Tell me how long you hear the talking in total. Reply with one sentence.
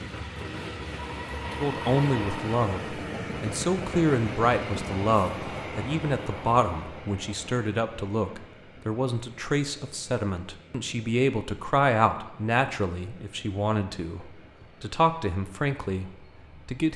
The talking can be heard for 15 seconds in total.